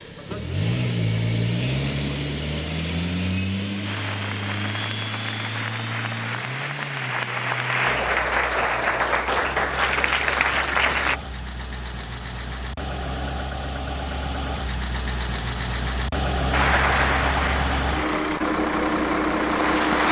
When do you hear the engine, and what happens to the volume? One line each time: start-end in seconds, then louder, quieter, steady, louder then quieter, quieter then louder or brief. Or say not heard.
0.0-20.0 quieter then louder.